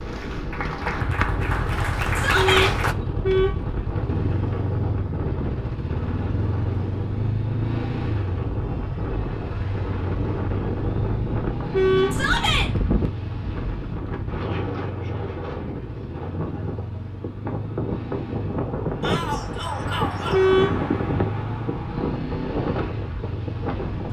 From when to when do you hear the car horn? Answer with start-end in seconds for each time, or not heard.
2.4-3.8, 11.7-12.3, 20.3-20.9.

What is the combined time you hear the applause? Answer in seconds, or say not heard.
3 s.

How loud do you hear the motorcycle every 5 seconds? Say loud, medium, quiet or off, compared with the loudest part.
loud, loud, loud, medium, loud.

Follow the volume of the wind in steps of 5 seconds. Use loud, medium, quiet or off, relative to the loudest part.
medium, medium, loud, loud, loud.